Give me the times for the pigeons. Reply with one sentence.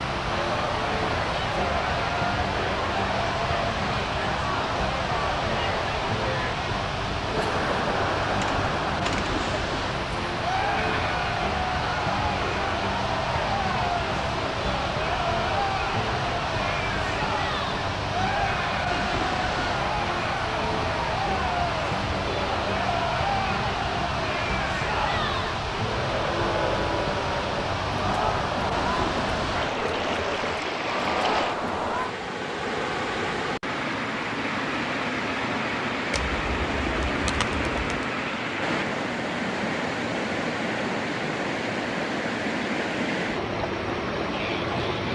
You can hear the pigeons from 8.2 to 9.4 s and from 36.1 to 38.0 s.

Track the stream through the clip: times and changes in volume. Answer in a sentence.
You can hear the stream from 0.0 to 45.1 s, at a steady volume.